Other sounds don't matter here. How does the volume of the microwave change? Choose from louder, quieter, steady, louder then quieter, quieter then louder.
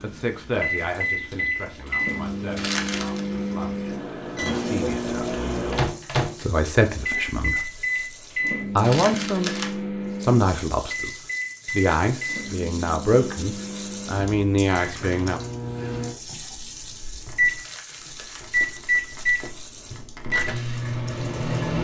quieter then louder.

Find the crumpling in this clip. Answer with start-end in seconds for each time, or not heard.
2.5-3.2, 8.8-9.8, 17.6-19.4.